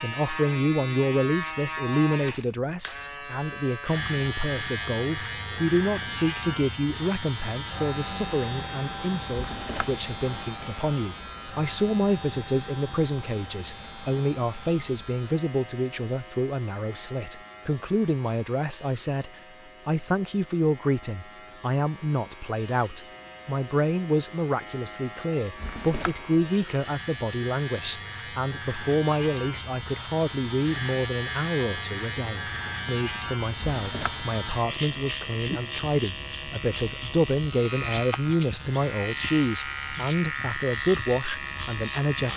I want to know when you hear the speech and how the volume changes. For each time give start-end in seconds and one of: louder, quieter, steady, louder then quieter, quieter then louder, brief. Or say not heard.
0.0-42.3 steady.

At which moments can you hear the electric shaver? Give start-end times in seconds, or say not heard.
0.0-42.3.